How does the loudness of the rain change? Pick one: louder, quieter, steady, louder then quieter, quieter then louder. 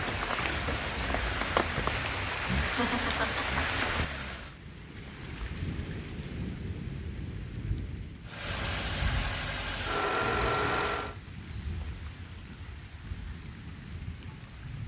quieter.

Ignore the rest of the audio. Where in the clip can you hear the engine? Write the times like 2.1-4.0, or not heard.
0.1-4.6, 8.2-11.2.